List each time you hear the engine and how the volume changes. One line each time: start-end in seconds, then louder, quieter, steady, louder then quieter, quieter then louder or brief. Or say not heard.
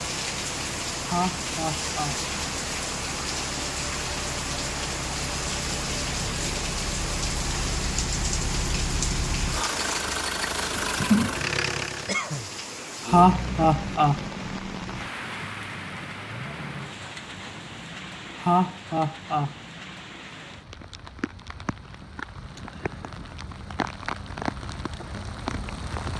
0.0-12.2 louder.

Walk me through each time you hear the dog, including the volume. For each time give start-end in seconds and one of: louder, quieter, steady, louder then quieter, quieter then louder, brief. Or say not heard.
not heard.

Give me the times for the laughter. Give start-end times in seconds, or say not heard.
1.1-2.2, 13.1-14.2, 18.4-19.6.